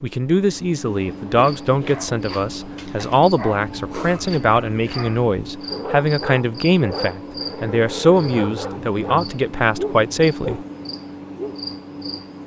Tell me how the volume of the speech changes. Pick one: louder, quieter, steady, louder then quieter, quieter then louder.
steady.